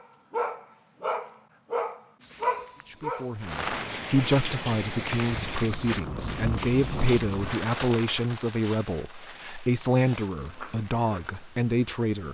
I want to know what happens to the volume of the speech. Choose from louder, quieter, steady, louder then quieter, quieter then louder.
steady.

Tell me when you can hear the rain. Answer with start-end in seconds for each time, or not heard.
3.4-12.3.